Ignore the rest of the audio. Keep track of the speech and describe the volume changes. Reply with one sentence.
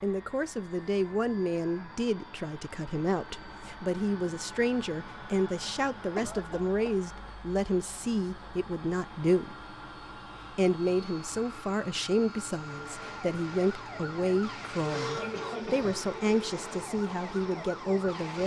The volume of the speech stays about the same.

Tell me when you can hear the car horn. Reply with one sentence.
You can't hear the car horn here.